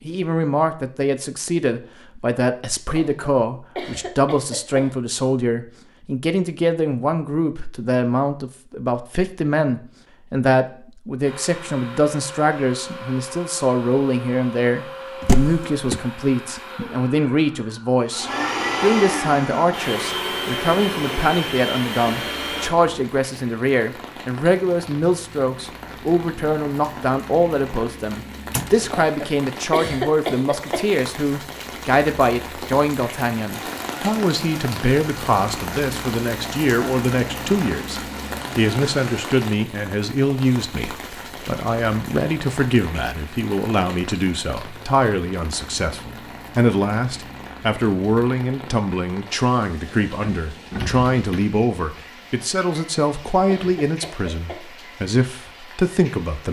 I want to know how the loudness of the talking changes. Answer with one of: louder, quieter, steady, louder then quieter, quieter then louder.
steady.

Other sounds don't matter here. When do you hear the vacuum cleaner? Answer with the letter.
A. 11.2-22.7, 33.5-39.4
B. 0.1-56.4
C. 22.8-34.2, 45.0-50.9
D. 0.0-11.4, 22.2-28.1
A.